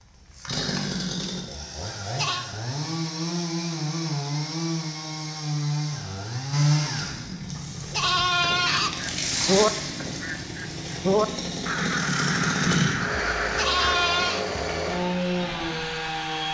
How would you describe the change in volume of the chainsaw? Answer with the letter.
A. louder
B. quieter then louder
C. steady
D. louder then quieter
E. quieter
C.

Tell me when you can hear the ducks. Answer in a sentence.
The ducks can be heard from 7.1 to 13.9 s.